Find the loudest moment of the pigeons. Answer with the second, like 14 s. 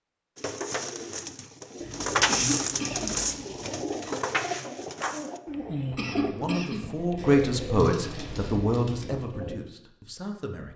2 s.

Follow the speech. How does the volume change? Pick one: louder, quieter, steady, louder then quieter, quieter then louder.
louder then quieter.